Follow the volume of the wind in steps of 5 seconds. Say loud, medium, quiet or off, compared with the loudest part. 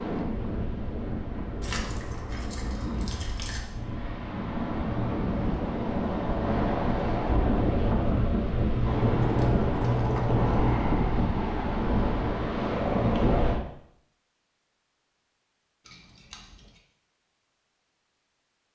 medium, loud, loud, off.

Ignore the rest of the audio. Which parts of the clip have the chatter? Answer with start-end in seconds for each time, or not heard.
not heard.